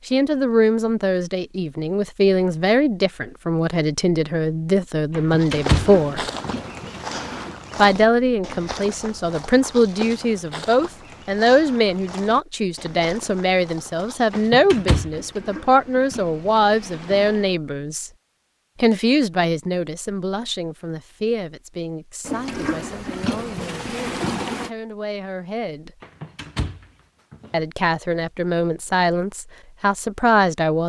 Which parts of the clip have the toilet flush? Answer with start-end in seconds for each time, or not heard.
5.7-7.6, 15.1-17.6, 22.2-24.7.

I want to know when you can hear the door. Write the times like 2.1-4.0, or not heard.
5.1-6.7, 14.3-15.2, 26.0-27.6.